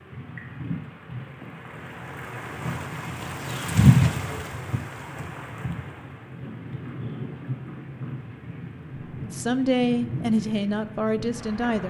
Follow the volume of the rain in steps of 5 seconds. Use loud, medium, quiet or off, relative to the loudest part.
loud, medium, medium.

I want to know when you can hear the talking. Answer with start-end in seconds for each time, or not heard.
9.3-11.8.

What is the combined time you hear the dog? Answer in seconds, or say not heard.
not heard.